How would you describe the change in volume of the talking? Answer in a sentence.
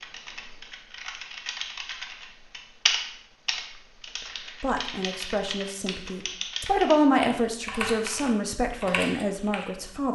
The loudness of the talking goes up, then down.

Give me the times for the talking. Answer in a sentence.
The talking can be heard from 4.6 to 10.1 s.